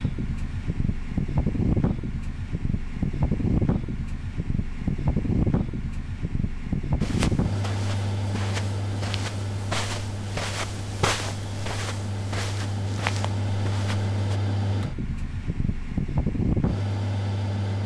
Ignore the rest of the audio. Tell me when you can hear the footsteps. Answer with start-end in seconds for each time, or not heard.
7.0-14.4.